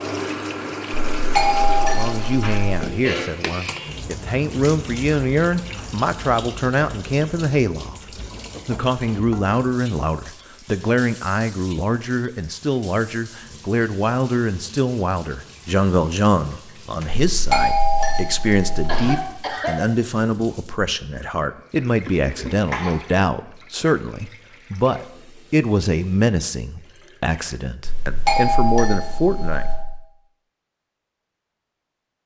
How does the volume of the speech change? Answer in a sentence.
The volume of the speech stays about the same.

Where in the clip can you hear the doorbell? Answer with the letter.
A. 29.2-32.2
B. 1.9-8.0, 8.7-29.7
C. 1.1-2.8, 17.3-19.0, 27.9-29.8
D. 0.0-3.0
C.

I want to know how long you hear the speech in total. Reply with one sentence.
You can hear the speech for 27 seconds altogether.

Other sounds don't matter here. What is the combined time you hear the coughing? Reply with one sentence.
You can hear the coughing for 3 seconds altogether.